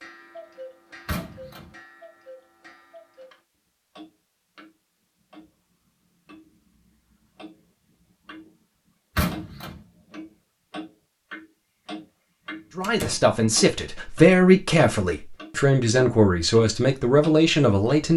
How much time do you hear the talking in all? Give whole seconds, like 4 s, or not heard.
5 s.